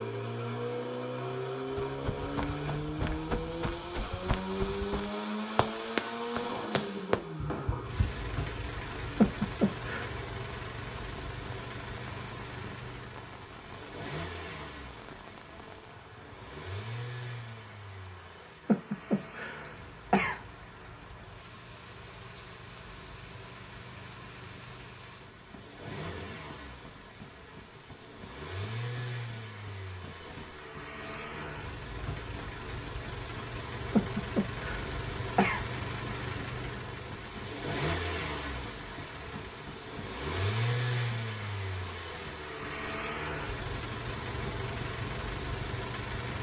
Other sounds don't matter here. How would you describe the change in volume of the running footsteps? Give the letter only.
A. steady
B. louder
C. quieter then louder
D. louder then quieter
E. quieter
B.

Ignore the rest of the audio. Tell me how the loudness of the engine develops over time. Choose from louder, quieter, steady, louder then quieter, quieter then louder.
quieter then louder.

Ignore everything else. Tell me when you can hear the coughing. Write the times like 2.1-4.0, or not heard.
9.2-10.2, 18.6-20.4, 34.0-35.6.